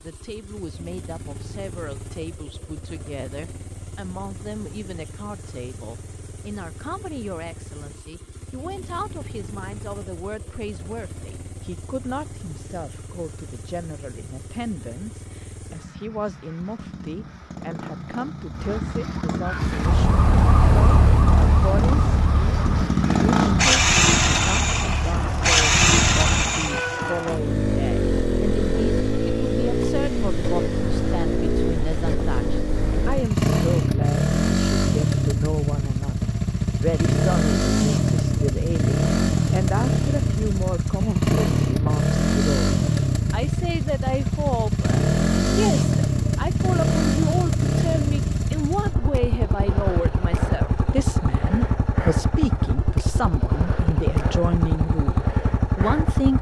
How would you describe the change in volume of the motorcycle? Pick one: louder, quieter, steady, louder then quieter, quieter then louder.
louder.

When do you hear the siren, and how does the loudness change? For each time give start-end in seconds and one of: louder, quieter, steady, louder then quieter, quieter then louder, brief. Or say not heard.
19.4-27.3 quieter.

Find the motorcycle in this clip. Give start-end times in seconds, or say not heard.
0.0-56.3.